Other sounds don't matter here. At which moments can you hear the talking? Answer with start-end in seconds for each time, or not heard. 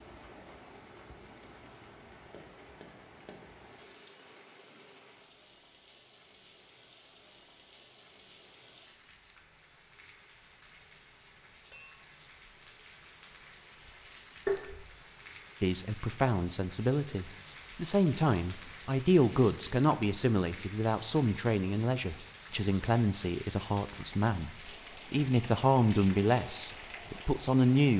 15.6-27.9.